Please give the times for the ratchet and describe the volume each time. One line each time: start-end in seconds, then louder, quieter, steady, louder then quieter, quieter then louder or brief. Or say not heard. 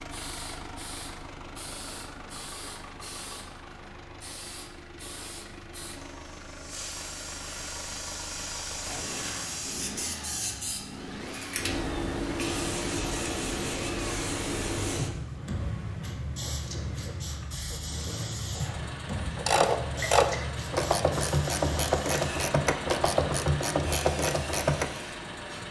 16.6-24.9 louder.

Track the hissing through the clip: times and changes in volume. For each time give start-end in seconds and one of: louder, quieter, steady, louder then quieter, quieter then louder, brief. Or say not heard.
0.0-25.6 louder then quieter.